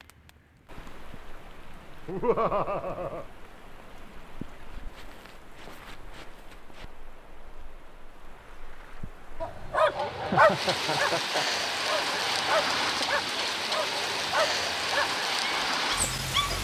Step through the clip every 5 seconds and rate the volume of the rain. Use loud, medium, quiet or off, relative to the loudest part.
quiet, quiet, loud, loud.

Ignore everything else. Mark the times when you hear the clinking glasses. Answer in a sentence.
You can't hear the clinking glasses here.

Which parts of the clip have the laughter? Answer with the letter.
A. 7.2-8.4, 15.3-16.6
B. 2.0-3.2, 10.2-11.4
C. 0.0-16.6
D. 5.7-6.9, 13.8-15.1
B.